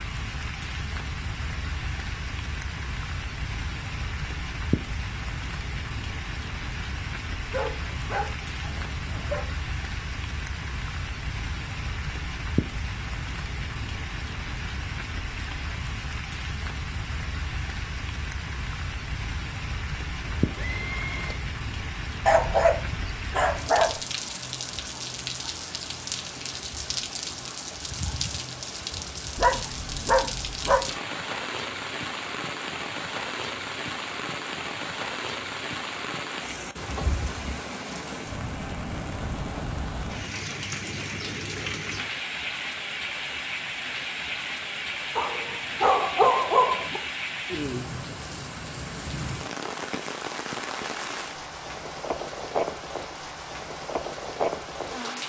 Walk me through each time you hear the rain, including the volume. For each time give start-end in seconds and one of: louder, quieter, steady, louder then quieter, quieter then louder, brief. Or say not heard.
0.0-55.2 steady.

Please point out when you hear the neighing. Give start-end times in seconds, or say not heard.
20.2-21.4.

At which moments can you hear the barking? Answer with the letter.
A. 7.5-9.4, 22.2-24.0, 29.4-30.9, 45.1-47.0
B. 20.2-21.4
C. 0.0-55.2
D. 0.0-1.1
A.